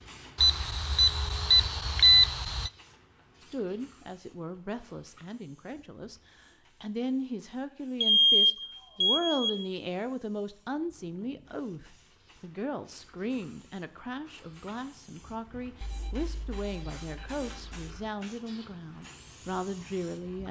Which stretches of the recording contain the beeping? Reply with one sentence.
You can hear the beeping from 0.3 to 2.7 s, from 8.0 to 9.7 s and from 15.8 to 17.9 s.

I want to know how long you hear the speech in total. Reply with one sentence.
You can hear the speech for 17 seconds altogether.